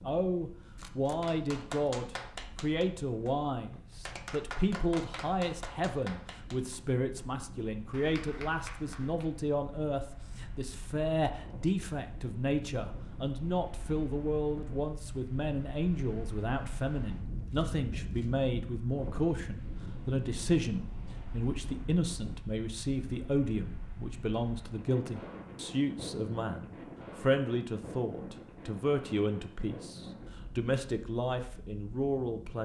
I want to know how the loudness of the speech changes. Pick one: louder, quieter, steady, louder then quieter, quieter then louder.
steady.